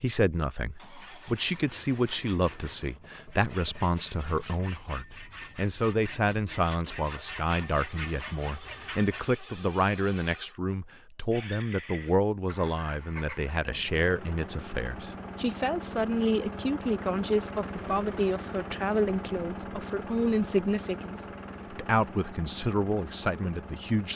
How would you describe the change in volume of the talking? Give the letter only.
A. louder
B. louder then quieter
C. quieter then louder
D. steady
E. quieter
D.